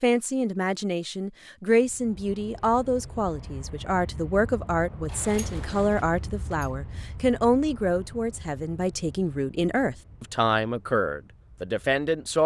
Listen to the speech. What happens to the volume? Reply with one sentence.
The loudness of the speech stays about the same.